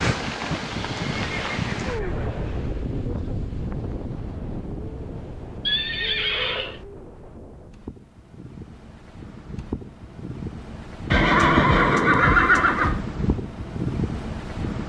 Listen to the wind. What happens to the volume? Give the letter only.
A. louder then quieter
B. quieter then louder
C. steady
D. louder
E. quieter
B.